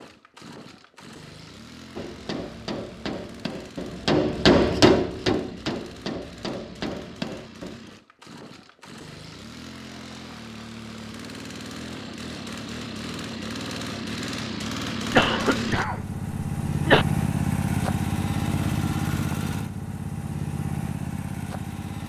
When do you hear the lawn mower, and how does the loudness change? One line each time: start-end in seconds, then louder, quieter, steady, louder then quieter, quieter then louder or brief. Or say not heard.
0.0-22.0 louder.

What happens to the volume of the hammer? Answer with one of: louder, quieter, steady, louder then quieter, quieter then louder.
louder then quieter.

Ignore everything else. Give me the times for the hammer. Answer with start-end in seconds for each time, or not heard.
1.9-7.8.